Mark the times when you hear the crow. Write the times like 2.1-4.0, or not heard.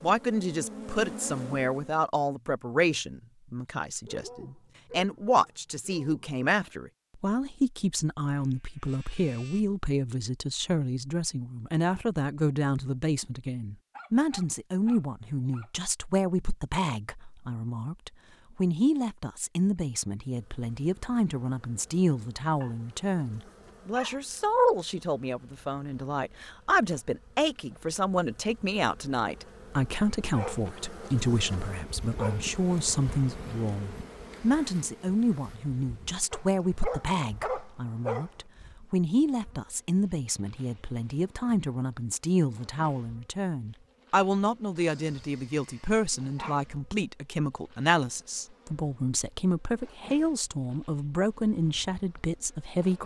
not heard.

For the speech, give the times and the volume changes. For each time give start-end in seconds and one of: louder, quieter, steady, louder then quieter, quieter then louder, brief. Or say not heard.
0.0-53.0 steady.